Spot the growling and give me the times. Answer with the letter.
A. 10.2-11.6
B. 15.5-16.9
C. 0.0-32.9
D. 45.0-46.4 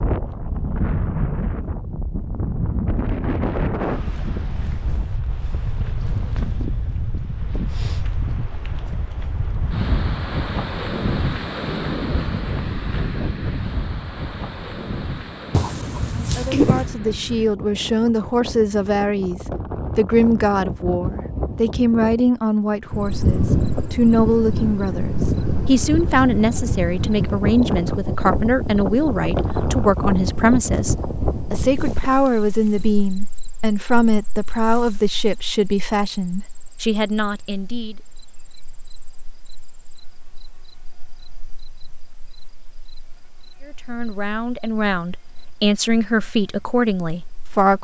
B.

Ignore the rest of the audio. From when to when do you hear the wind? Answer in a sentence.
You can hear the wind from 0.0 to 32.9 s.